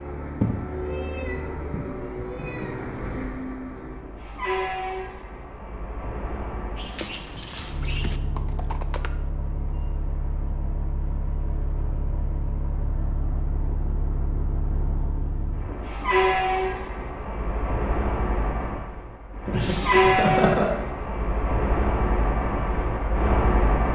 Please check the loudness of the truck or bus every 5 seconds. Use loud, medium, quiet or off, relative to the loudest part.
medium, quiet, medium, loud, loud.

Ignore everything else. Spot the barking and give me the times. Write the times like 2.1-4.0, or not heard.
not heard.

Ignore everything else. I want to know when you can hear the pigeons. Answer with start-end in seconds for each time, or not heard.
not heard.